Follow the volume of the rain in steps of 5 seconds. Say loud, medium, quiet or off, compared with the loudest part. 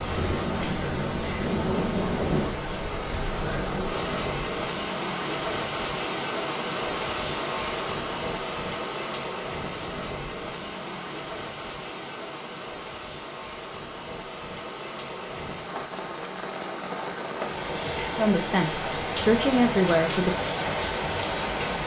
loud, loud, medium, loud, loud.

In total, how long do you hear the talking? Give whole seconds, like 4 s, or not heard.
2 s.